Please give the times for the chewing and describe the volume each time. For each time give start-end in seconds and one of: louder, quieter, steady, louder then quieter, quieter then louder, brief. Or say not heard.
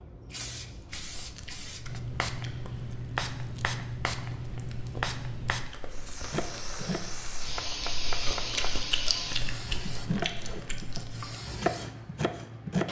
0.7-11.3 louder.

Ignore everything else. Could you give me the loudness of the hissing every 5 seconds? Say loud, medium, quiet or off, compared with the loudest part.
loud, loud, medium.